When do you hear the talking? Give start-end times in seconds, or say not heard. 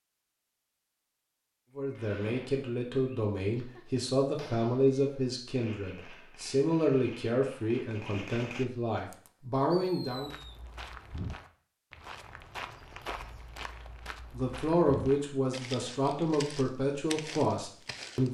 1.8-10.3, 14.3-18.2.